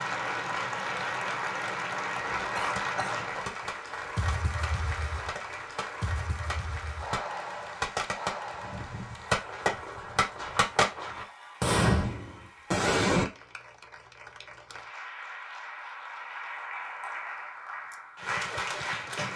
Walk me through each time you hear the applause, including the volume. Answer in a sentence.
The applause can be heard from 0.0 to 19.3 s, getting quieter then louder.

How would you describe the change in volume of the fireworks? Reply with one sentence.
The volume of the fireworks goes up.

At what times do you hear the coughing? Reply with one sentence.
You can hear the coughing from 2.5 to 3.1 s.